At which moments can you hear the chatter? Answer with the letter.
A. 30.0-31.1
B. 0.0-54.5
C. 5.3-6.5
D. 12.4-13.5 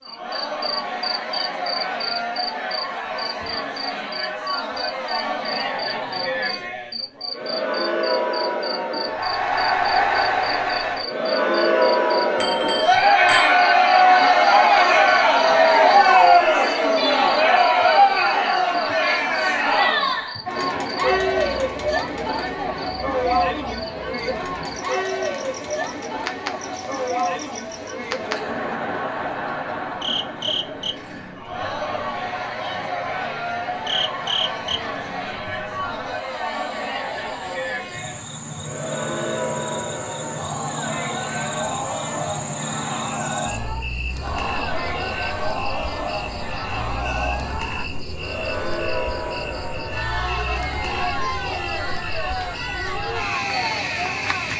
B.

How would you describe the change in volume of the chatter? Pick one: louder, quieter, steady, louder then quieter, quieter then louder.
louder then quieter.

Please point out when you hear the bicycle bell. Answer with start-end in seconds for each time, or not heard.
12.4-13.5.